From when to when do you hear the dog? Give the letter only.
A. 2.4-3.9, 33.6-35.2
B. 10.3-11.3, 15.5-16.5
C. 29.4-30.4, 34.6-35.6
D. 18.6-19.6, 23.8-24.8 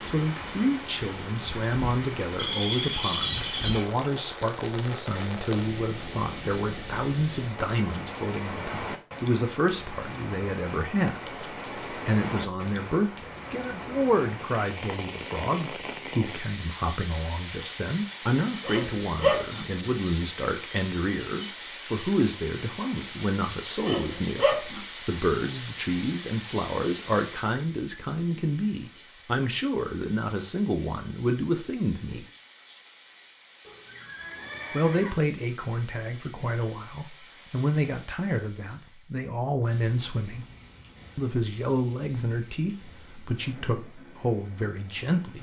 D.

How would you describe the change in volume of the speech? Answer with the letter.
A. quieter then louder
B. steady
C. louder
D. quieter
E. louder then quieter
B.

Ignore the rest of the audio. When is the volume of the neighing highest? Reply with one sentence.
The volume of the neighing peaks at 3 seconds.